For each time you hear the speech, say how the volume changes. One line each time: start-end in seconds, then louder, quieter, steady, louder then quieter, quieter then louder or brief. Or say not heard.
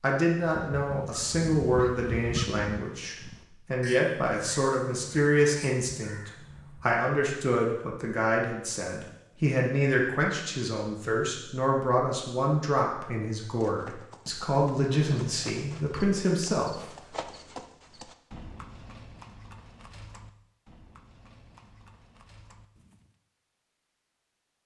0.0-16.9 steady.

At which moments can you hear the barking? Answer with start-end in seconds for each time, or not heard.
not heard.